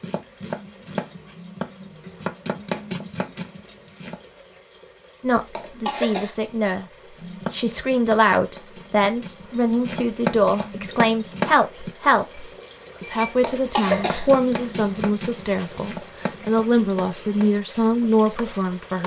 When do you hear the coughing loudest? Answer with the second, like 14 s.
14 s.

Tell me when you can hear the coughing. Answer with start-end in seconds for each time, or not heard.
5.3-6.3, 13.2-14.7.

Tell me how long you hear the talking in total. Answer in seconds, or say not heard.
14 s.